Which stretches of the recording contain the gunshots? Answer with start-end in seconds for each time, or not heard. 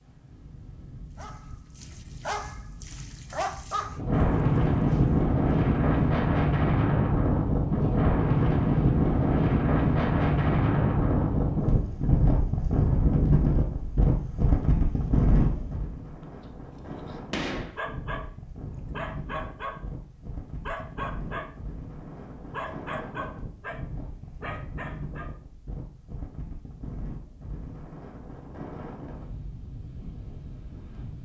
17.3-17.8.